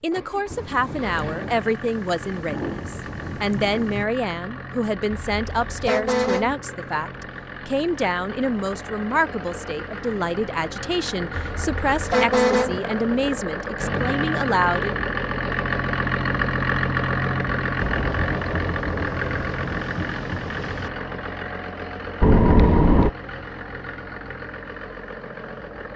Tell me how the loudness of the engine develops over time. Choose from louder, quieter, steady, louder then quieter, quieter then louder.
louder then quieter.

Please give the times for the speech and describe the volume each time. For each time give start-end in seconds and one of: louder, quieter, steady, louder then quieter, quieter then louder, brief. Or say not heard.
0.0-14.9 steady.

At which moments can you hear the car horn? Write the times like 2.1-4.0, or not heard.
5.1-6.5, 11.3-12.8, 22.2-23.1.